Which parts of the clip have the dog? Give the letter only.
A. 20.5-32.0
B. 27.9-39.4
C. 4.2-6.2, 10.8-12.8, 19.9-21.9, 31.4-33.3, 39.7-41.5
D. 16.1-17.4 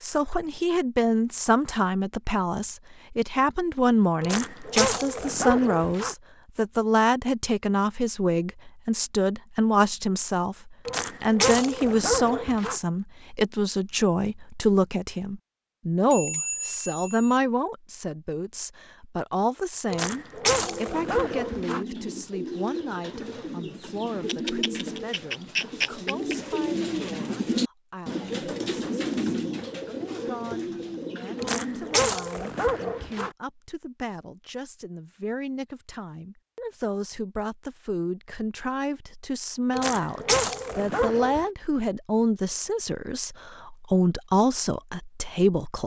C.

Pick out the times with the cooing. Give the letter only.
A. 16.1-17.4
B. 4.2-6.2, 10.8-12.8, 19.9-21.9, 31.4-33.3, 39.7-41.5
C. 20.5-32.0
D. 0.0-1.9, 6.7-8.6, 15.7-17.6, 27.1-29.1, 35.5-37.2
C.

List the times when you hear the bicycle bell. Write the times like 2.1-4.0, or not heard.
16.1-17.4.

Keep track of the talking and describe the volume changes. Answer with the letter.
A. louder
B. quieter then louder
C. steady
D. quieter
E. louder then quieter
B.